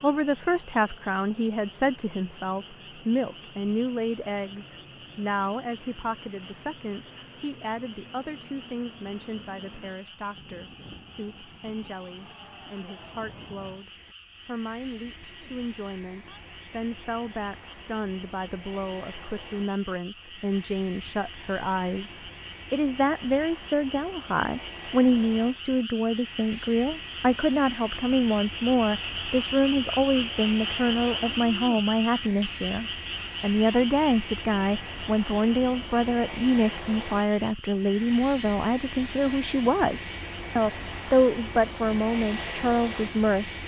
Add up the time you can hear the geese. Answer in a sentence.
You can't hear the geese here.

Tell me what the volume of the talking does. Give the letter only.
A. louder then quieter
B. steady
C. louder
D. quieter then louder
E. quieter
D.